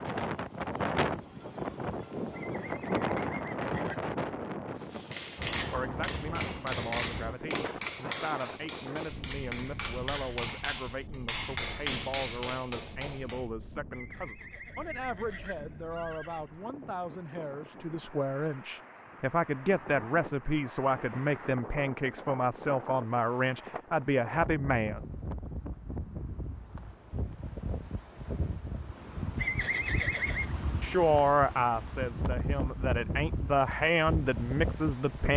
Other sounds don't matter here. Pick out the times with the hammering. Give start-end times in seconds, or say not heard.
5.1-13.4.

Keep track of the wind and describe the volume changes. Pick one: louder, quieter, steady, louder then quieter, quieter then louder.
quieter then louder.